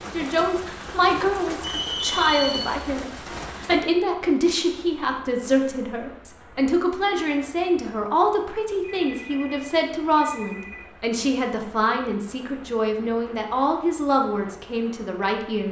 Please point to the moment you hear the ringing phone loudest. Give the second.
2 s.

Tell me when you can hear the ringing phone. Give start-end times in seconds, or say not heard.
1.6-2.6, 9.0-10.8.